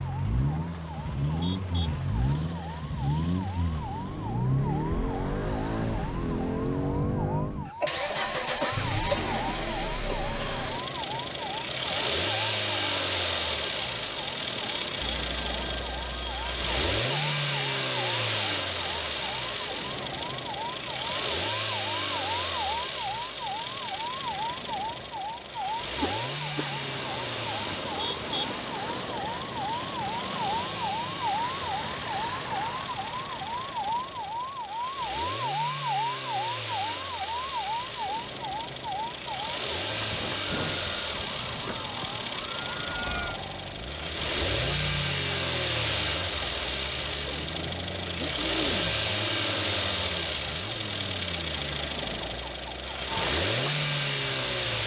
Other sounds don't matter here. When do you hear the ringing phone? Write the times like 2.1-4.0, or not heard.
15.0-16.8, 44.5-45.0.